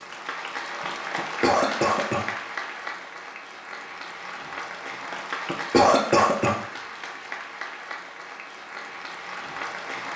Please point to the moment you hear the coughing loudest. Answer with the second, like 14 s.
6 s.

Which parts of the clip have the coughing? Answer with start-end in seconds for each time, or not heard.
1.1-2.2, 5.5-6.5.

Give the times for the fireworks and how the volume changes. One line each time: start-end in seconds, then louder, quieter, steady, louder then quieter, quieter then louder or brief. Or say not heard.
not heard.